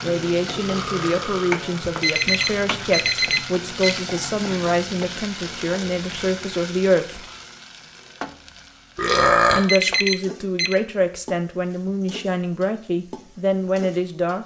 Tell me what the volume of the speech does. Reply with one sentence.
The loudness of the speech stays about the same.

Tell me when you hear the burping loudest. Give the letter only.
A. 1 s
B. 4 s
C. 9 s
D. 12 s
C.